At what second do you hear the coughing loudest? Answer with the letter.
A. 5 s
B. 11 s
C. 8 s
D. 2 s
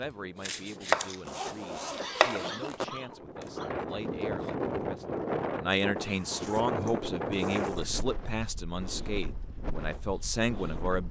D.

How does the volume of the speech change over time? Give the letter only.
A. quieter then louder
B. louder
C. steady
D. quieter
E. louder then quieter
B.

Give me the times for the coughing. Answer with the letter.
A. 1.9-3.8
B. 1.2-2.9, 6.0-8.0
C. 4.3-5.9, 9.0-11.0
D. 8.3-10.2
A.